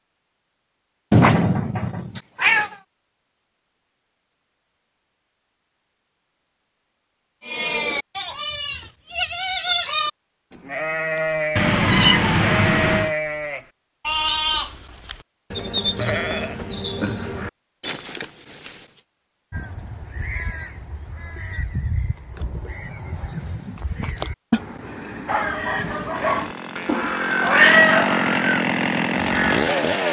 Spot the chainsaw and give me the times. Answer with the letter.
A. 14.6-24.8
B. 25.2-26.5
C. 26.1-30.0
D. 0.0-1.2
C.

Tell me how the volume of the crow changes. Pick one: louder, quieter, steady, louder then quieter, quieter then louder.
louder.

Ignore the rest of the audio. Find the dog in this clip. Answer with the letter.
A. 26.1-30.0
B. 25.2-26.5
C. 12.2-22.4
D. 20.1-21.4
B.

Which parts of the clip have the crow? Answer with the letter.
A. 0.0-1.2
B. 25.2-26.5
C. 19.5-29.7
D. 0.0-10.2
C.